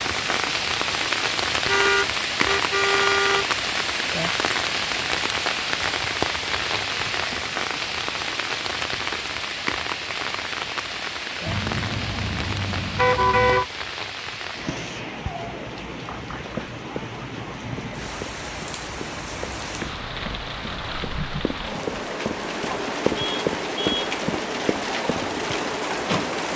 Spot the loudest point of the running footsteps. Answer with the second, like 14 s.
23 s.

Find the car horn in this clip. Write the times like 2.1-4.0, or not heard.
1.6-3.5, 11.4-13.7, 22.7-24.1.